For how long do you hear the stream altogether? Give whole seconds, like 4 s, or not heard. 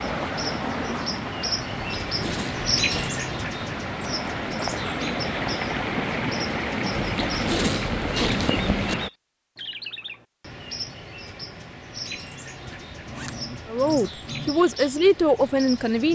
9 s.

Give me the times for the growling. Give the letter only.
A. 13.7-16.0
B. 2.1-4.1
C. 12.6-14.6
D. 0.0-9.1
C.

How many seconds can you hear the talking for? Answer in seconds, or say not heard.
2 s.